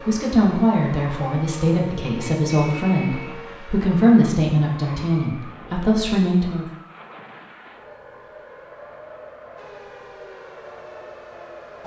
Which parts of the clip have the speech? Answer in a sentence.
The speech can be heard from 0.1 to 6.7 s.